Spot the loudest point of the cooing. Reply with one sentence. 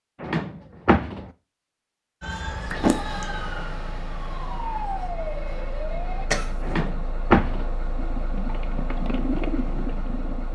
The volume of the cooing peaks at 9 seconds.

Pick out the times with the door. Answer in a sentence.
The door can be heard from 0.2 to 1.3 s and from 6.6 to 7.7 s.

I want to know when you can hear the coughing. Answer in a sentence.
The coughing can be heard from 2.7 to 3.2 s and from 6.3 to 6.9 s.